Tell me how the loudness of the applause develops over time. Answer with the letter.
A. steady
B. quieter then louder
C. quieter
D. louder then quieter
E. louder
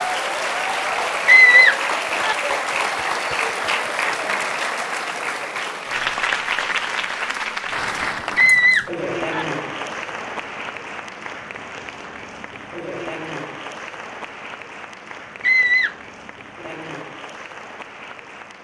C.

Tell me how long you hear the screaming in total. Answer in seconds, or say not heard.
3 s.